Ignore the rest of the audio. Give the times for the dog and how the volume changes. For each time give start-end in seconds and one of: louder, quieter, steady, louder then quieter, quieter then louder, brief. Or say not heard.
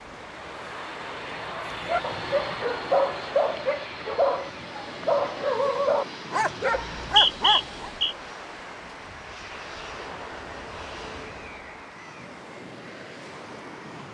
1.5-7.9 steady.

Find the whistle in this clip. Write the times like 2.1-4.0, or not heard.
6.8-8.2.